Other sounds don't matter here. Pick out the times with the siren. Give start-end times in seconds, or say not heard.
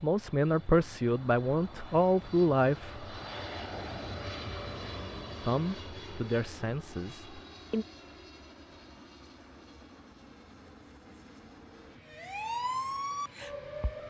12.1-14.0.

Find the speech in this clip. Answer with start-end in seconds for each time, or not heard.
0.0-3.0, 5.4-7.8.